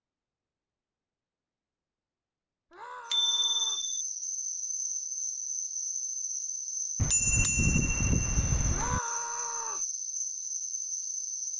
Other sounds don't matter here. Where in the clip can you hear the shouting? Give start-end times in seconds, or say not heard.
2.7-3.9, 8.7-9.8.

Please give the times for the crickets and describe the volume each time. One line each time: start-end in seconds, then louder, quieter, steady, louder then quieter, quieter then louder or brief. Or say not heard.
3.0-11.5 steady.